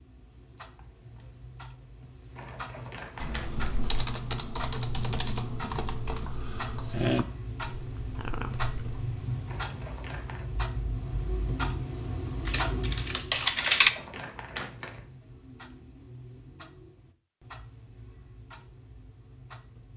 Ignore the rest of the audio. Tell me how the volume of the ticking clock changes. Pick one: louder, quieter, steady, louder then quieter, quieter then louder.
louder then quieter.